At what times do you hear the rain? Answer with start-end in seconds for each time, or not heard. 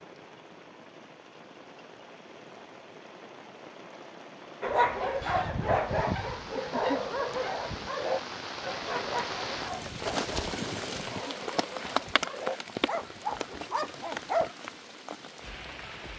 0.0-16.1.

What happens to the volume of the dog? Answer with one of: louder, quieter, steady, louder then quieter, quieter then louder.
quieter then louder.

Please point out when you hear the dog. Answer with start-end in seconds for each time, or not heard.
4.6-14.6.